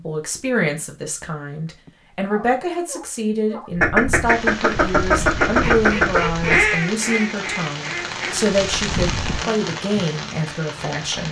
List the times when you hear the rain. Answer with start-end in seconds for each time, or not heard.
4.2-11.2.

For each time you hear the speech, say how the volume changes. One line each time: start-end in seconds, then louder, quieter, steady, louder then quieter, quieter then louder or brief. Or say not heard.
0.0-11.2 steady.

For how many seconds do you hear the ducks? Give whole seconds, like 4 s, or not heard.
6 s.